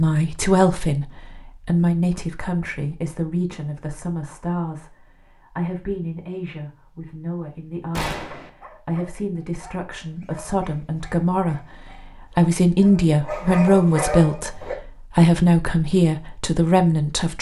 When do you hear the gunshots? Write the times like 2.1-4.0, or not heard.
7.9-8.5.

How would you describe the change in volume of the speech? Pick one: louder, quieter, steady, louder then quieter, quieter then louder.
quieter then louder.